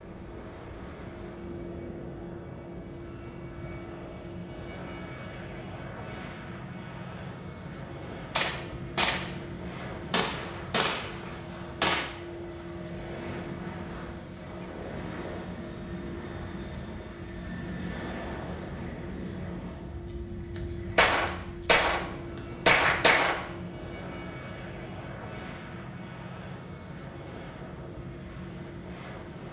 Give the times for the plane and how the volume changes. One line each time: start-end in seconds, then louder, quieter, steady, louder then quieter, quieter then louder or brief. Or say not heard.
0.0-29.4 steady.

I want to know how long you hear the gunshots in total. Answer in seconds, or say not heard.
6 s.